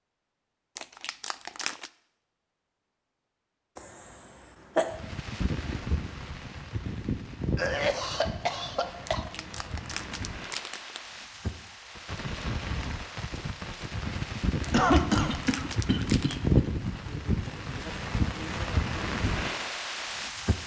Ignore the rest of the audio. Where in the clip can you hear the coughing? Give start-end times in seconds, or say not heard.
3.8-5.0, 7.5-9.2, 14.7-16.6.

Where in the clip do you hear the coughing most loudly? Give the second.
15 s.